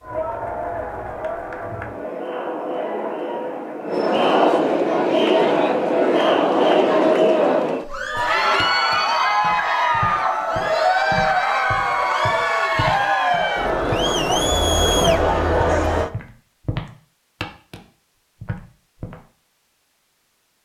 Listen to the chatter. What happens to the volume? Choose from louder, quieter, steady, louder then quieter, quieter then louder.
louder.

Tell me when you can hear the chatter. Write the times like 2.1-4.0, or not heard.
0.0-16.1.